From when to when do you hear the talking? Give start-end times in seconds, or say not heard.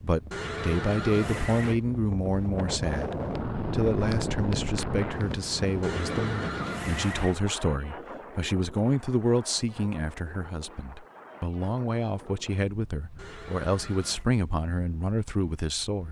0.0-16.0.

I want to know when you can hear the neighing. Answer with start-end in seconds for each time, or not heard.
0.3-1.8, 5.8-7.4, 13.2-14.2.